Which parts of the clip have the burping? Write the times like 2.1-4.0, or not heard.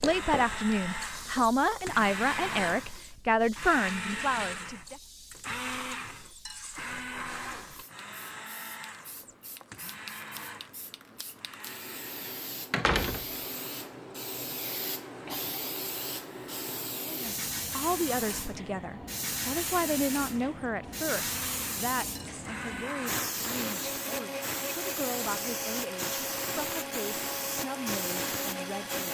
not heard.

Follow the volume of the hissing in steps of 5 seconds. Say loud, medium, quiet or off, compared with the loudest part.
medium, quiet, medium, loud, loud, loud.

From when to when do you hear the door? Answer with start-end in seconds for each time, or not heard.
12.7-13.9.